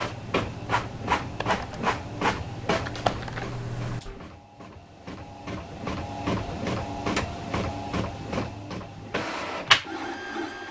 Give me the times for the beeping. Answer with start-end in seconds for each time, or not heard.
not heard.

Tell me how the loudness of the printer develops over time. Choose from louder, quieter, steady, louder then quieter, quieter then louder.
quieter then louder.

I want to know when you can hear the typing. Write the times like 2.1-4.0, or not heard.
0.0-4.2.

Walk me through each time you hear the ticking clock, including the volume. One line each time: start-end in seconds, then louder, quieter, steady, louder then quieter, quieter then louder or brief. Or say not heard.
not heard.